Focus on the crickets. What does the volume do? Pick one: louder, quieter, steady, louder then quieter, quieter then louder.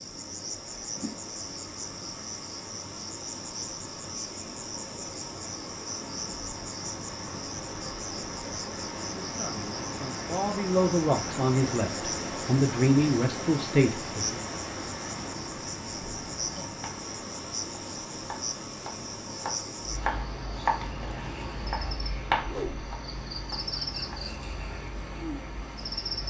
steady.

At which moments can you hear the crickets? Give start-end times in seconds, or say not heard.
0.0-26.2.